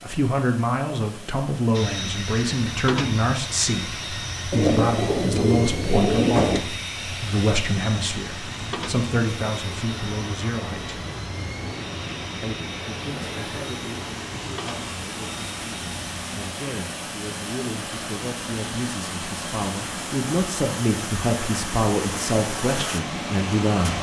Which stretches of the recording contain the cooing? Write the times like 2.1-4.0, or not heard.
4.5-6.6.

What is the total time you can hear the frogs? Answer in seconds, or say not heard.
not heard.